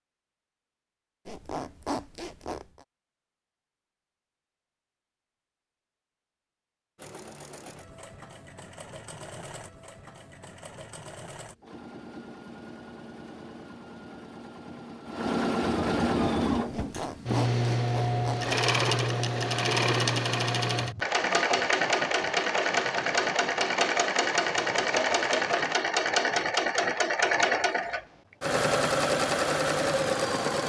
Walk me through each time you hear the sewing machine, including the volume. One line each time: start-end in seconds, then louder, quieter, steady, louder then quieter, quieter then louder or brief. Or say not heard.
7.0-30.6 louder.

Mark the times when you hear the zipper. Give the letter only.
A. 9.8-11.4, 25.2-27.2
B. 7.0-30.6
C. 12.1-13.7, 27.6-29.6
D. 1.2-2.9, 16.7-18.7
D.